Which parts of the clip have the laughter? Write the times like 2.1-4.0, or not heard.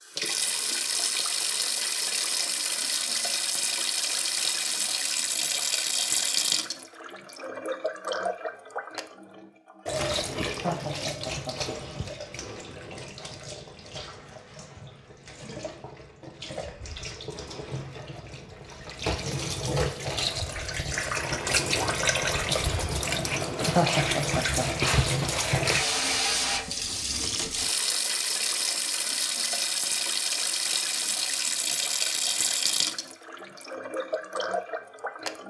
10.6-11.9, 23.8-24.6.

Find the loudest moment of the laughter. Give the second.
24 s.